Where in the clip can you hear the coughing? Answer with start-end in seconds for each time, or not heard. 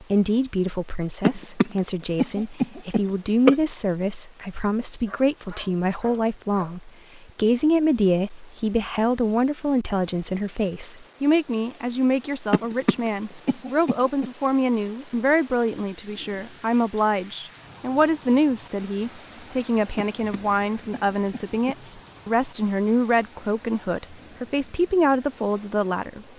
1.2-3.6, 12.5-14.3, 20.1-21.8.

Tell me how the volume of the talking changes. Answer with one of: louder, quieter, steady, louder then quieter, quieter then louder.
steady.